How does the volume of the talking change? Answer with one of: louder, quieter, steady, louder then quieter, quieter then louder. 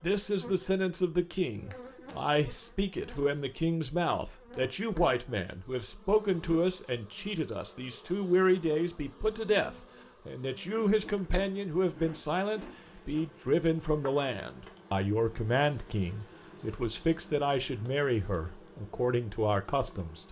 steady.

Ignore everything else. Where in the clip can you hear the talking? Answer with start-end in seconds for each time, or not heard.
0.0-20.2.